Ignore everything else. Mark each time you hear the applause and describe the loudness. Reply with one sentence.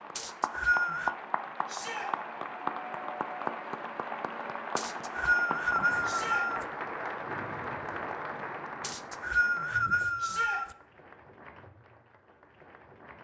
The applause can be heard from 0.0 to 13.2 s, getting quieter.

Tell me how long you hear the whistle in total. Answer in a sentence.
The whistle can be heard for 5 seconds in total.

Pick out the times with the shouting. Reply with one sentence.
The shouting can be heard from 1.6 to 2.1 s, from 6.0 to 6.5 s and from 10.2 to 10.6 s.